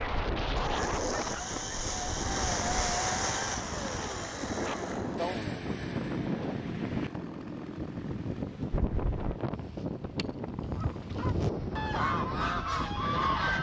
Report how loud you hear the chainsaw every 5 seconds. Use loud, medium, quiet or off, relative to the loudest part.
loud, medium, off.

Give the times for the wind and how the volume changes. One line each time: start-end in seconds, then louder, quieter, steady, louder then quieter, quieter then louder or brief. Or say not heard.
0.0-13.5 steady.